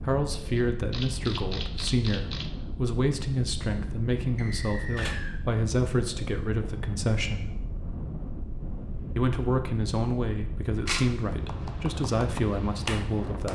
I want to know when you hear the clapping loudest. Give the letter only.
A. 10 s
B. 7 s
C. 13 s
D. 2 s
C.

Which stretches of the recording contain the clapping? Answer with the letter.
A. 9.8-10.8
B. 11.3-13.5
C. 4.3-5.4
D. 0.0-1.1
B.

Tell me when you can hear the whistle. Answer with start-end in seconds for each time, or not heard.
4.3-5.4.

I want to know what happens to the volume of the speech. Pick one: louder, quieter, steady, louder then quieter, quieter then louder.
steady.